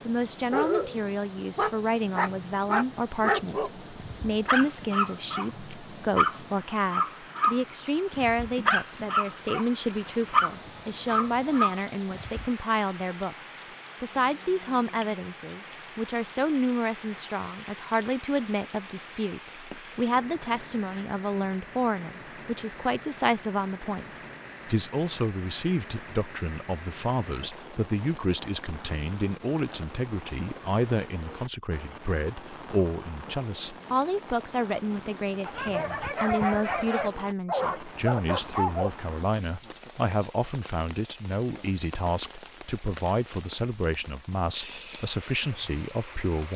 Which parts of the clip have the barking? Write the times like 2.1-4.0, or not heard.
0.5-9.7, 10.3-12.4, 35.5-38.9.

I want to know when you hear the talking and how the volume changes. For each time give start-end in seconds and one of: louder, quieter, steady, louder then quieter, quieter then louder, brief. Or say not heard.
0.1-24.1 steady
24.6-46.5 steady.